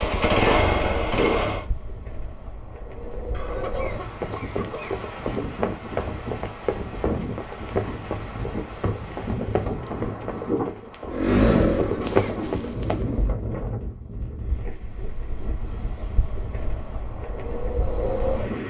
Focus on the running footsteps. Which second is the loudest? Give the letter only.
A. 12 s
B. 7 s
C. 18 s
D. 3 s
A.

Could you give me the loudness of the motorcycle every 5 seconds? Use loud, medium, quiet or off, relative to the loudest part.
loud, off, loud, off.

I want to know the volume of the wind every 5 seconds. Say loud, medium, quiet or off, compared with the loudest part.
medium, loud, loud, loud.